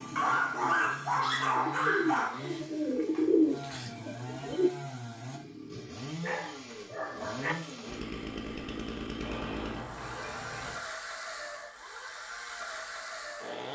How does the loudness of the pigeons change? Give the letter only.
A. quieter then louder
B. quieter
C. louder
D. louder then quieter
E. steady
D.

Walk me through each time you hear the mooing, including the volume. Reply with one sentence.
The mooing can't be heard in this clip.